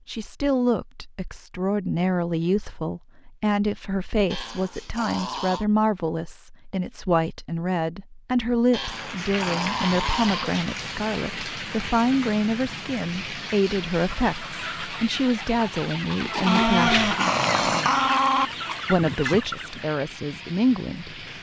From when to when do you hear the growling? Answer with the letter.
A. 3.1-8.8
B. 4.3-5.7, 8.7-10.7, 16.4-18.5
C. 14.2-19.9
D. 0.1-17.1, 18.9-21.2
B.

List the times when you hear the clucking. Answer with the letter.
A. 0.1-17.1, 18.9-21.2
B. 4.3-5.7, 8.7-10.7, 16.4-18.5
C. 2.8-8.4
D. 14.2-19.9
D.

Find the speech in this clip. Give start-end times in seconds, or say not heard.
0.1-17.1, 18.9-21.2.